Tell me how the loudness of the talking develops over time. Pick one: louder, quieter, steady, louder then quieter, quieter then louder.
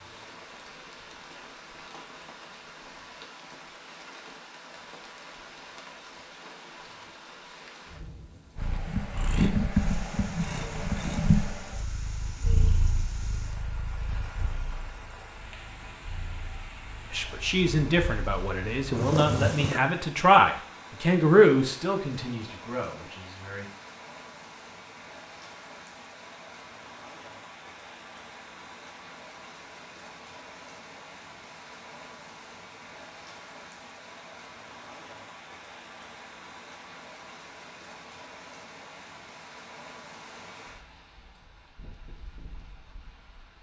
louder then quieter.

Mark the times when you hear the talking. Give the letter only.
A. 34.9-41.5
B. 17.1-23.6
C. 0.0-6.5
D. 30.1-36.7
B.